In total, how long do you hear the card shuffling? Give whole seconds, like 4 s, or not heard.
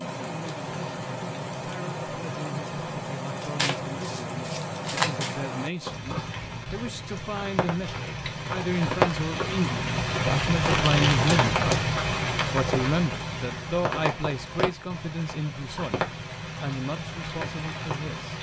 3 s.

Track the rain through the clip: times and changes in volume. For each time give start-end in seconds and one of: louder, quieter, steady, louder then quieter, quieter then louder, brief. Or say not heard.
0.0-18.3 louder then quieter.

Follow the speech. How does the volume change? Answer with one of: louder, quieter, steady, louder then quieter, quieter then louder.
louder then quieter.